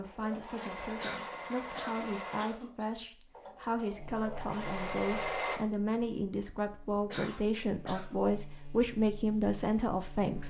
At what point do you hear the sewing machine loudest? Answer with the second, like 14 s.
5 s.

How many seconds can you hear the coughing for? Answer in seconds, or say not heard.
3 s.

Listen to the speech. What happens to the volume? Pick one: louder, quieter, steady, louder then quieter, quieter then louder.
louder.